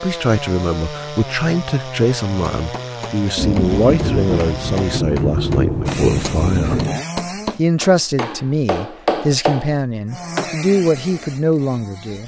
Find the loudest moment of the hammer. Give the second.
9 s.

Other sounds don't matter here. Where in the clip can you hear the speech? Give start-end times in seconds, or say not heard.
0.0-6.8, 7.5-12.2.